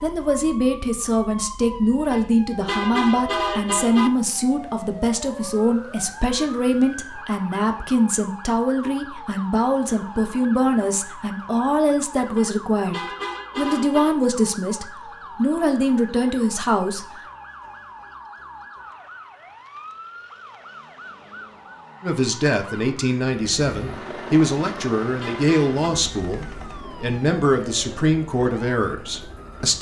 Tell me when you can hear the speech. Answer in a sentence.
You can hear the speech from 0.0 to 12.9 s, from 13.6 to 17.1 s and from 22.0 to 29.7 s.